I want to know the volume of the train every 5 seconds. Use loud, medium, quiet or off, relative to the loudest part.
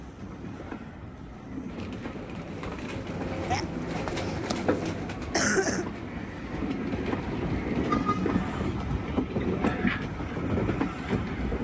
medium, loud, loud.